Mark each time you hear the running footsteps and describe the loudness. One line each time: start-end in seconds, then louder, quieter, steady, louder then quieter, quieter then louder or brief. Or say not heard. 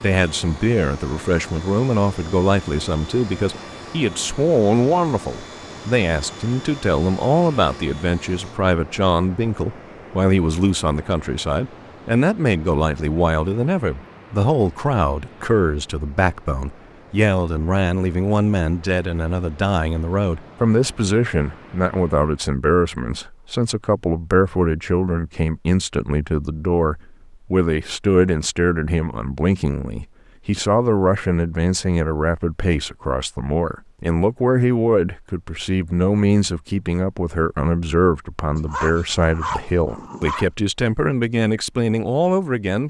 not heard.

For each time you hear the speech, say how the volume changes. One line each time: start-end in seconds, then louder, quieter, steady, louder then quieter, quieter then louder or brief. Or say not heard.
0.0-42.8 steady.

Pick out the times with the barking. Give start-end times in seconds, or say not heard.
38.5-40.5.